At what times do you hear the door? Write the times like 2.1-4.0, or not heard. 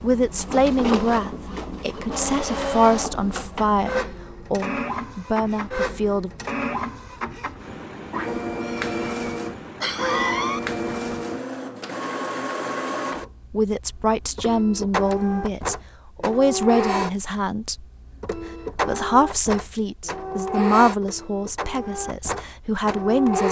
not heard.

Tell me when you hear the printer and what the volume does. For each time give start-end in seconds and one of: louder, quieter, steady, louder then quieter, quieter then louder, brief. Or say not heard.
0.0-23.4 steady.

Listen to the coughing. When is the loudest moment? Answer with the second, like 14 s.
10 s.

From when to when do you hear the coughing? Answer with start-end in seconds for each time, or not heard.
8.6-10.6.